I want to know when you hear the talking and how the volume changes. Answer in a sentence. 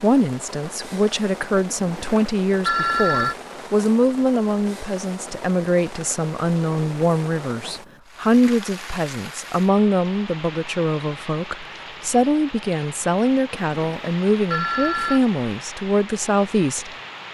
The talking can be heard from 0.0 to 16.9 s, at a steady volume.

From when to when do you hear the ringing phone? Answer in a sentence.
You can hear the ringing phone from 1.7 to 3.4 s and from 13.6 to 15.2 s.